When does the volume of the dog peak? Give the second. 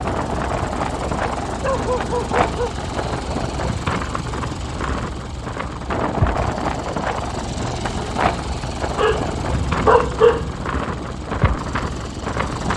10 s.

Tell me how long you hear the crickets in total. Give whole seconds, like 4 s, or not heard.
not heard.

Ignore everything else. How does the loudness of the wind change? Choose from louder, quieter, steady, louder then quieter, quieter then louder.
steady.